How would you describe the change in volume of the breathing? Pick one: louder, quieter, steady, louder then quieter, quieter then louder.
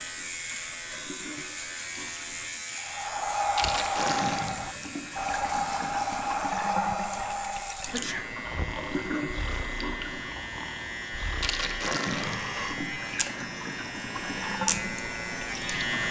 quieter.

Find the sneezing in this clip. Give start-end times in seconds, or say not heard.
7.9-8.3.